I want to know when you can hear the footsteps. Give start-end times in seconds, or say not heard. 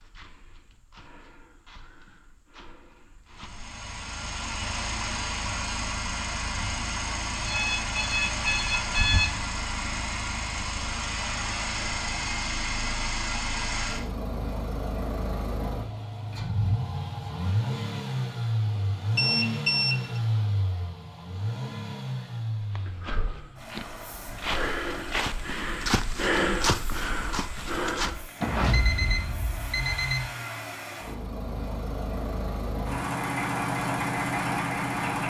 0.0-3.8, 22.6-28.3.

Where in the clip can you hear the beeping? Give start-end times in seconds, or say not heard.
7.5-9.4, 18.8-20.2, 28.4-30.3.